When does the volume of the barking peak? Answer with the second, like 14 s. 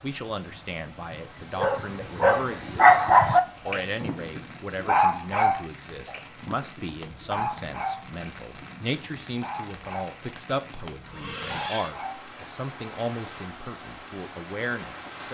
3 s.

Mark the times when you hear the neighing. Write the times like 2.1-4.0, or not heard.
11.1-11.9.